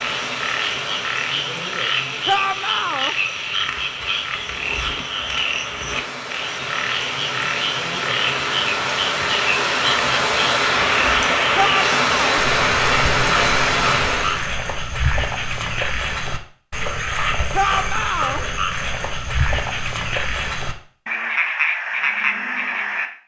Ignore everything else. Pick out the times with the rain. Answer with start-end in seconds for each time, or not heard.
0.0-14.5.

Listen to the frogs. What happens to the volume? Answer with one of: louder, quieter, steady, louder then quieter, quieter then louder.
steady.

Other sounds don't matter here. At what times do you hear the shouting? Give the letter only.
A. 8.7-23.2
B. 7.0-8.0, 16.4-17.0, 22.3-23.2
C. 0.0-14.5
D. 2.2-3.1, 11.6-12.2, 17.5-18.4
D.